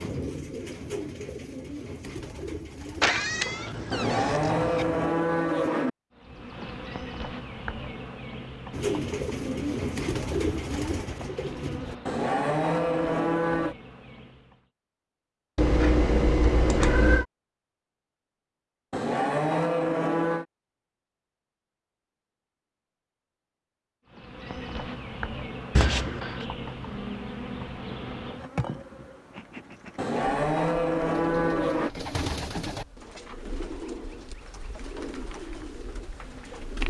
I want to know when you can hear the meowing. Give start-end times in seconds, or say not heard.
3.0-4.8, 15.6-17.2, 25.8-26.4.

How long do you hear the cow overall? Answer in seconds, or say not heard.
7 s.